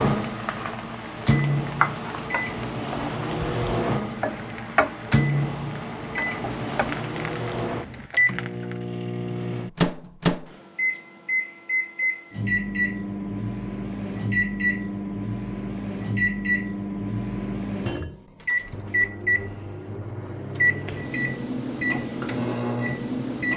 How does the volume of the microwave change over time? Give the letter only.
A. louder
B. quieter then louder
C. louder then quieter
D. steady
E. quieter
D.